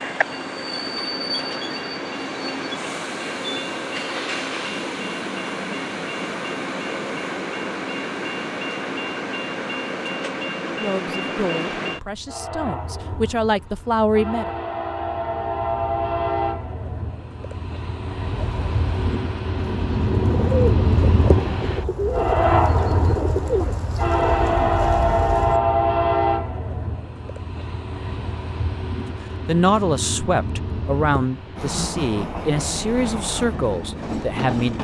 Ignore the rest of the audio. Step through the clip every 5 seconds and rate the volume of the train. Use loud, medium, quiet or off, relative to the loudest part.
medium, medium, medium, medium, loud, loud, medium.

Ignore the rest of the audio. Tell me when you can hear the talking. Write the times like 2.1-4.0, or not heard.
10.7-14.5, 29.4-34.7.